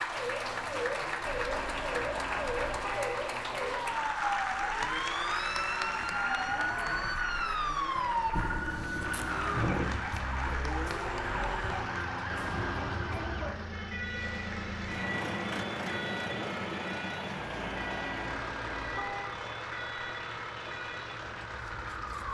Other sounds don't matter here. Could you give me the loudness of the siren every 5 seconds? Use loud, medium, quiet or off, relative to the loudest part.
loud, loud, medium, medium, medium.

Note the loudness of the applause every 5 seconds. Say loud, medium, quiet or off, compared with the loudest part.
loud, loud, medium, medium, medium.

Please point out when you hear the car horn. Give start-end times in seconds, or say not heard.
1.2-3.2, 12.3-13.1, 17.4-19.4.